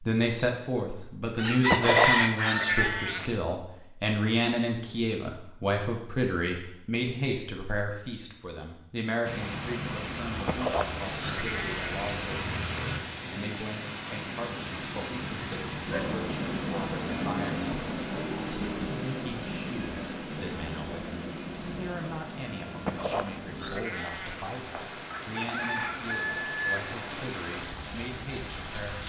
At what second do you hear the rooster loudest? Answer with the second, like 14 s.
2 s.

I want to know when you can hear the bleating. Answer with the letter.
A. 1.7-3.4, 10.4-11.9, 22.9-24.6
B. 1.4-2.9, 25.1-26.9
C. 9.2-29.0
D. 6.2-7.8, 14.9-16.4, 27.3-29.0
A.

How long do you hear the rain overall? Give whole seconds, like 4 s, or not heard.
20 s.